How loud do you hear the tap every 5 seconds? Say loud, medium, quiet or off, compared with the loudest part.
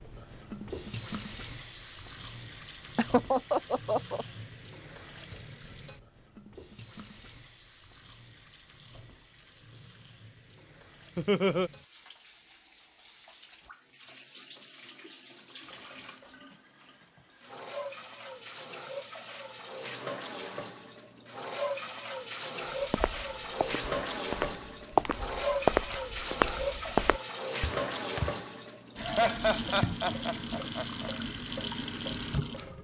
medium, quiet, quiet, medium, loud, loud, loud.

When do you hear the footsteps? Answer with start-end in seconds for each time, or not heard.
22.9-28.4.